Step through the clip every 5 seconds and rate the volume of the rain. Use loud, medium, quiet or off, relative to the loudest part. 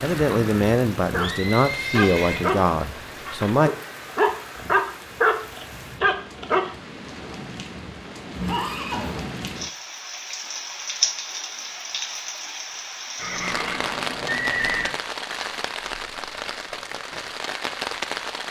medium, medium, loud, loud.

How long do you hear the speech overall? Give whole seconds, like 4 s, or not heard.
4 s.